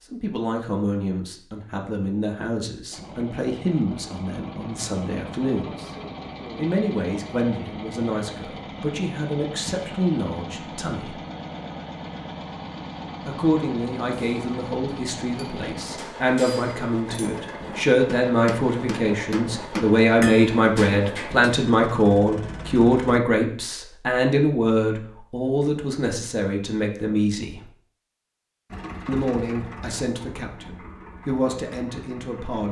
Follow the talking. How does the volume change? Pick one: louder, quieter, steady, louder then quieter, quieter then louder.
louder then quieter.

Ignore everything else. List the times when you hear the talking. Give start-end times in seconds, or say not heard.
0.1-5.9, 6.5-11.2, 13.2-27.7, 29.1-32.6.